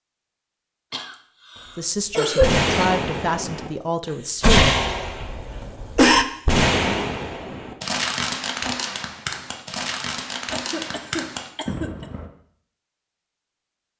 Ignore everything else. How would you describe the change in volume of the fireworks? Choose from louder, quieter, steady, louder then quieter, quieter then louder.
quieter.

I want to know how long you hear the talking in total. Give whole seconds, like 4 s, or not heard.
3 s.